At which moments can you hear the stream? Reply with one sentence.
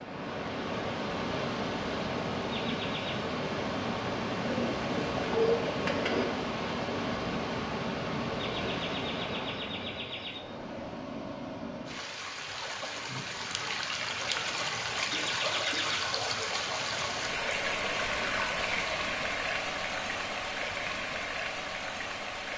You can hear the stream from 0.0 to 22.5 s.